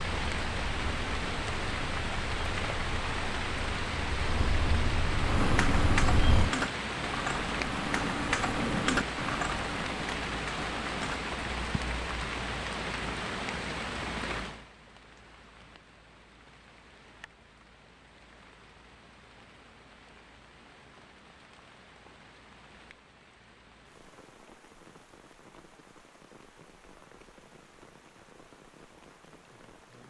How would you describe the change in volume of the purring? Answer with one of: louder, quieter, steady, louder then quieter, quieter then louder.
louder.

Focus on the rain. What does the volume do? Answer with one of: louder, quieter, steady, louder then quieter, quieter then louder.
quieter.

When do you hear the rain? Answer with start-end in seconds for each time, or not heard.
0.0-30.0.